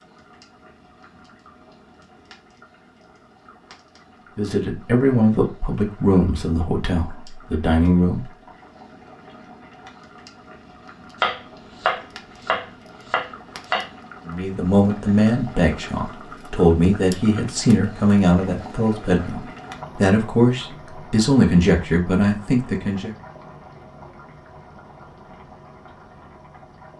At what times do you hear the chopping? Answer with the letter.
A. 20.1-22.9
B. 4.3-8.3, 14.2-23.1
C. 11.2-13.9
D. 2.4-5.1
C.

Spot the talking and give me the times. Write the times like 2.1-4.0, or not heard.
4.3-8.3, 14.2-23.1.